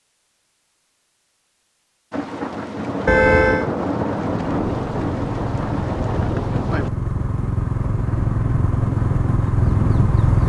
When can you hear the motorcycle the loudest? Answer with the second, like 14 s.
10 s.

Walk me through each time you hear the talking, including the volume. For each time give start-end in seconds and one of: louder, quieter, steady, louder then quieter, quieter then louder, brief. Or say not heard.
not heard.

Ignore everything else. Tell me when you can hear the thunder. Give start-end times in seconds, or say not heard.
2.1-6.9.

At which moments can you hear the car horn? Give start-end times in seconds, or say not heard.
3.0-3.7.